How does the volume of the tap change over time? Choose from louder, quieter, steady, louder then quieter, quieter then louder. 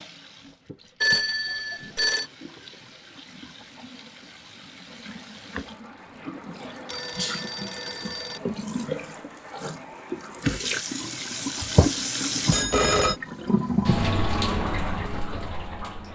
louder.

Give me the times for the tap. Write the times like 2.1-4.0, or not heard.
0.0-16.1.